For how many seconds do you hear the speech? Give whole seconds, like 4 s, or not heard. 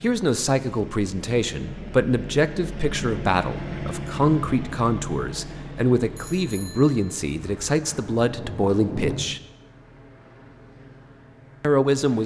10 s.